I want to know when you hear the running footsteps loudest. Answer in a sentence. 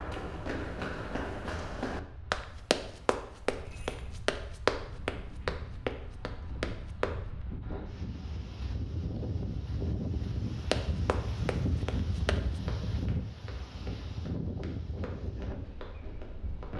The volume of the running footsteps peaks at 5 seconds.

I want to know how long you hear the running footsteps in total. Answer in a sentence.
You can hear the running footsteps for 13 seconds altogether.